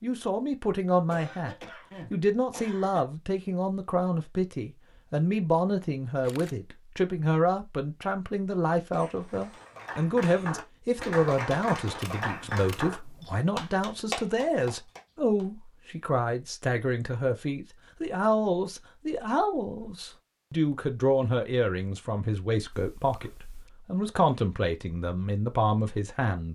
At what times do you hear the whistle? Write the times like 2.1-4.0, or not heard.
not heard.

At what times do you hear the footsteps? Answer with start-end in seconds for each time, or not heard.
not heard.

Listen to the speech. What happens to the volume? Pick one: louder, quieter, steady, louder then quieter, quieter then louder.
steady.